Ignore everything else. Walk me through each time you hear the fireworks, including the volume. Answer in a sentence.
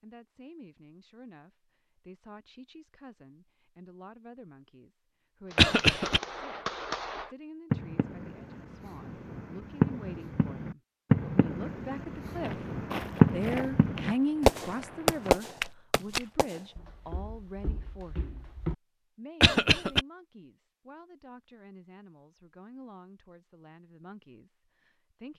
You can hear the fireworks from 5.5 to 16.6 s, getting louder.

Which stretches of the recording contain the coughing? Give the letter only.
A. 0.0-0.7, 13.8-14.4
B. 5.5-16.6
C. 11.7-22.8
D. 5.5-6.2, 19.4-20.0
D.